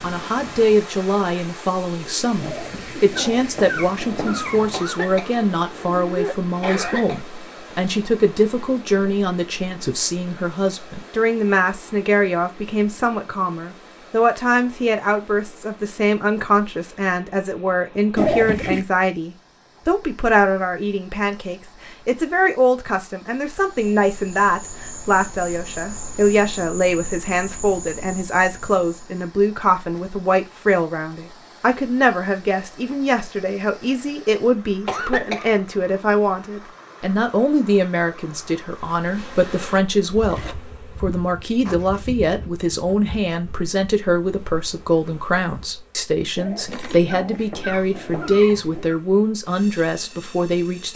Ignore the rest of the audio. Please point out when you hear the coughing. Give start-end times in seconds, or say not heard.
4.7-7.2, 34.9-35.6.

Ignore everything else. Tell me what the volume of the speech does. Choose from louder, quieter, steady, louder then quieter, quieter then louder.
steady.